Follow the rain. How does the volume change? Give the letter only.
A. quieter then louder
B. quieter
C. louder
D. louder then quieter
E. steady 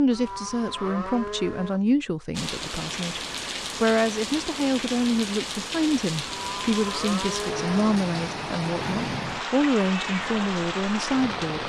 E.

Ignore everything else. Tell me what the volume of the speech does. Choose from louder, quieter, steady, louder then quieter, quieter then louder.
steady.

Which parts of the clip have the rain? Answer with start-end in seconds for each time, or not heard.
2.3-11.6.